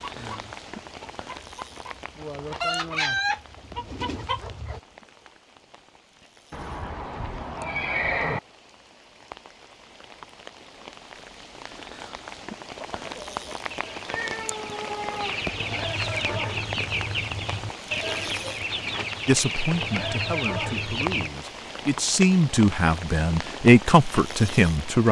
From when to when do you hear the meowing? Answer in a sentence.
The meowing can be heard from 14.1 to 15.5 s.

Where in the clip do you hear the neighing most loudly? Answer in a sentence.
The loudest moment of the neighing is at 8 seconds.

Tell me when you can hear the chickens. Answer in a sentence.
You can hear the chickens from 0.0 to 4.8 s and from 12.8 to 21.3 s.